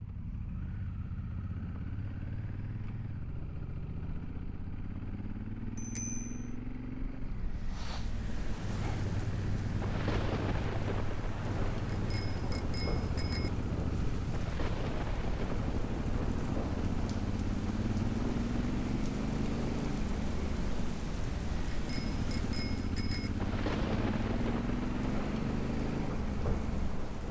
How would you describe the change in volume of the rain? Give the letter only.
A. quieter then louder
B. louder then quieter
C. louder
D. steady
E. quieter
D.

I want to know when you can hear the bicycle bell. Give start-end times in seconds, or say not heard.
5.8-6.5, 11.9-13.5, 21.8-23.3.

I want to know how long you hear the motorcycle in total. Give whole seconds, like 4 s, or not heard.
27 s.